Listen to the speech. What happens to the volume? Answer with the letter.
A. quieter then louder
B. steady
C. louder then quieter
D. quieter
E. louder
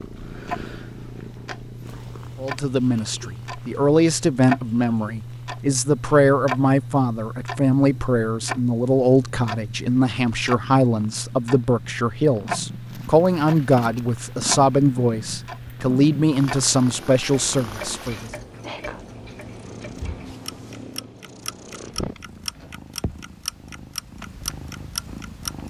B.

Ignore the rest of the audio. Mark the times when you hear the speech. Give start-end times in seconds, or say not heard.
2.4-18.3.